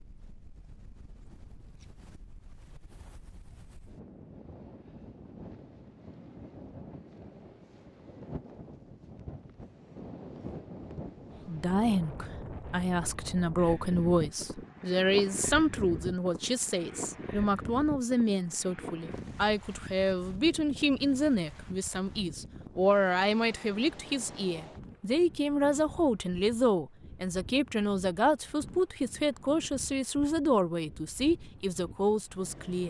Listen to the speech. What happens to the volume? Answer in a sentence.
The volume of the speech stays about the same.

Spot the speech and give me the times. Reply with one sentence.
The speech can be heard from 11.4 to 32.8 s.